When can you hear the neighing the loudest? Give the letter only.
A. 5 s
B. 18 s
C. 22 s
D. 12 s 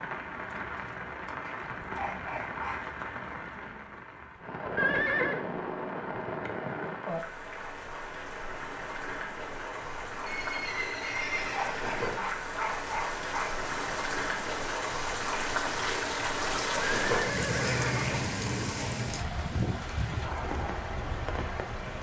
A.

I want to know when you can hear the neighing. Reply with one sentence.
The neighing can be heard from 4.8 to 5.5 s, from 10.2 to 12.3 s and from 16.8 to 18.2 s.